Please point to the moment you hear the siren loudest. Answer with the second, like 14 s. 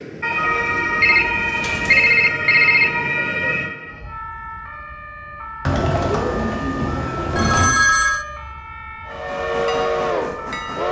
1 s.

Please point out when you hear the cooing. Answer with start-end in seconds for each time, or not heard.
0.3-2.1, 5.6-7.7.